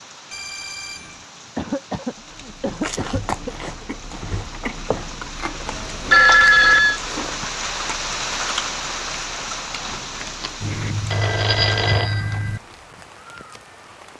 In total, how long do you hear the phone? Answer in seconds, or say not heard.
4 s.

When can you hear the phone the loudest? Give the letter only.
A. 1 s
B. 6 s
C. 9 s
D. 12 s
B.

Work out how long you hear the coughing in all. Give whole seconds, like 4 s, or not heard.
2 s.